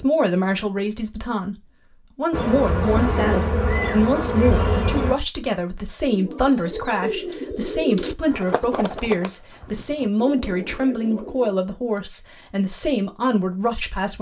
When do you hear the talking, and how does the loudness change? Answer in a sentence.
The talking can be heard from 0.0 to 14.1 s, at a steady volume.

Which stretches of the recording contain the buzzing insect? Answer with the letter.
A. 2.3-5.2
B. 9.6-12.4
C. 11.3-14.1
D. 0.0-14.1
A.